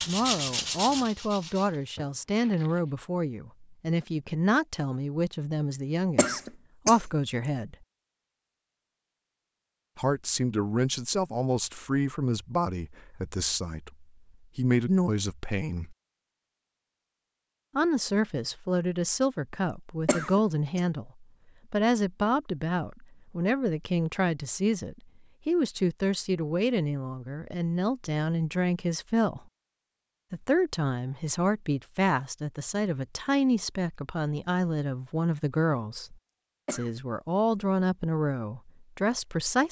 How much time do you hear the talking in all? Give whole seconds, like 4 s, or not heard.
35 s.